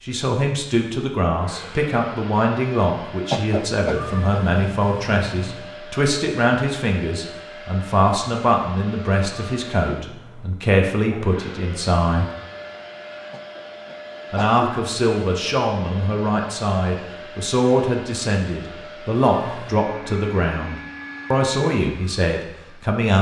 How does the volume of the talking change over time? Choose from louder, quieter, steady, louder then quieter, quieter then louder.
steady.